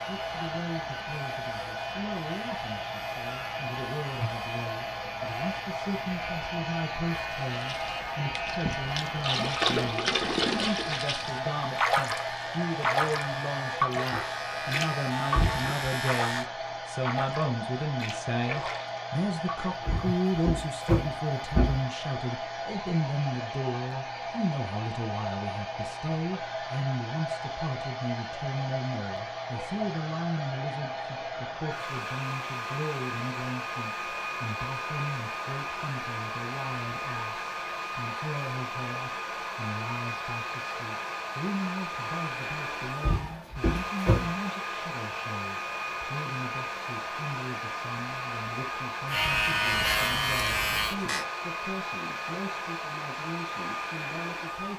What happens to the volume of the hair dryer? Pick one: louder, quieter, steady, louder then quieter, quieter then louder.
steady.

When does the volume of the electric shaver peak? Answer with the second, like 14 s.
50 s.